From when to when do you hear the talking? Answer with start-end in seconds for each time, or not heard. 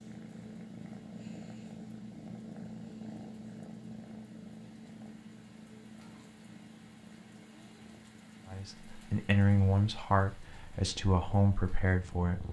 8.4-12.4.